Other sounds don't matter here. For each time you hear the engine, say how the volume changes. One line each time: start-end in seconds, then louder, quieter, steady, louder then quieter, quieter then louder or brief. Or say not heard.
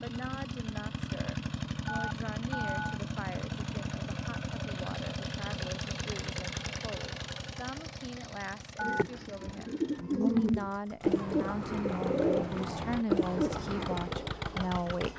0.0-15.1 quieter then louder.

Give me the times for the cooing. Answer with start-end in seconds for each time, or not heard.
8.8-14.3.